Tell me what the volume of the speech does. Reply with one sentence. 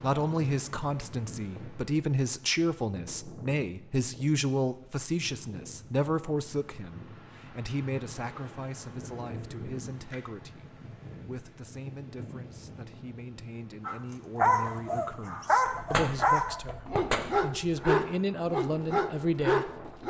The volume of the speech goes down, then up.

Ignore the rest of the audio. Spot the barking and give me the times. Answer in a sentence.
You can hear the barking from 13.8 to 20.0 s.